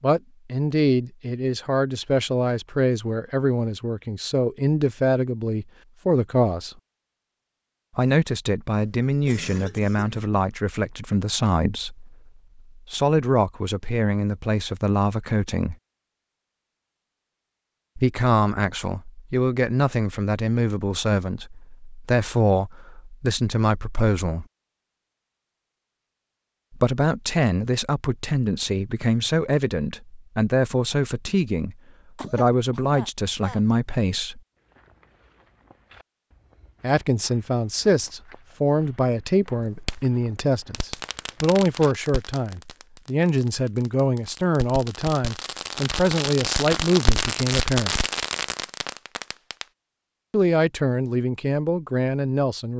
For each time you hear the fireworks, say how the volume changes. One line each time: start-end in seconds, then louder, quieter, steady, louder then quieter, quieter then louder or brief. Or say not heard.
39.8-49.6 quieter then louder.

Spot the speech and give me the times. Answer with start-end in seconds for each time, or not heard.
0.0-6.8, 8.0-15.8, 17.9-24.4, 26.8-34.4, 36.8-48.0, 50.3-52.7.